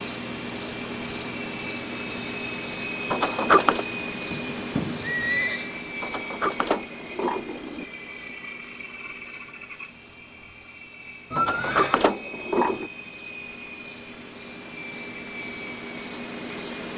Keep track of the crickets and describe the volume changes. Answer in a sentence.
The loudness of the crickets goes down, then up.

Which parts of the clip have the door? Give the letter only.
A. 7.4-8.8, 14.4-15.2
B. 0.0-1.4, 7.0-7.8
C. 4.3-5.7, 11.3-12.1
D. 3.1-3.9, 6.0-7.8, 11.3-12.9
D.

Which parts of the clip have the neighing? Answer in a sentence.
The neighing can be heard from 4.3 to 5.7 s and from 11.3 to 12.1 s.